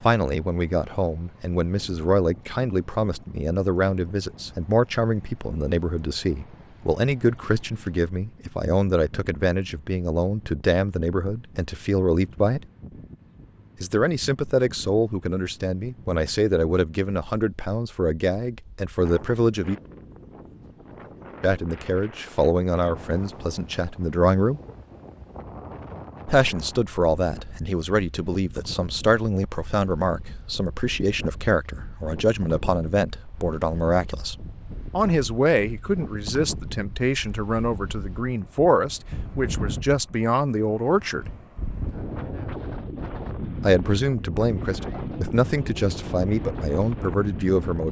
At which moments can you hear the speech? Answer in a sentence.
The speech can be heard from 0.0 to 12.6 s, from 13.8 to 19.8 s, from 21.4 to 24.6 s, from 26.2 to 41.2 s and from 43.6 to 47.8 s.